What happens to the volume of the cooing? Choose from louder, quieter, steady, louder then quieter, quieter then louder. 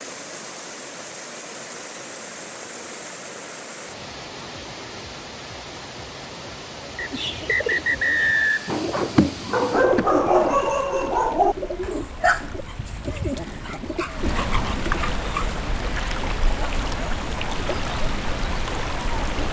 louder then quieter.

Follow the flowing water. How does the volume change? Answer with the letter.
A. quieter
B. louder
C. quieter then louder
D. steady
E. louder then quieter
B.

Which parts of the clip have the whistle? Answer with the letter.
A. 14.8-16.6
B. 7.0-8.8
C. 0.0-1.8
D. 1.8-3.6
B.